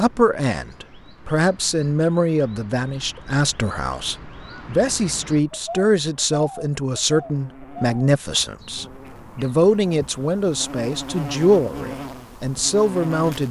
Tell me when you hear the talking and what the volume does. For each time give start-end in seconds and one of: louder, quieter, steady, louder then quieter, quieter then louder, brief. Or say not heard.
0.0-13.4 steady.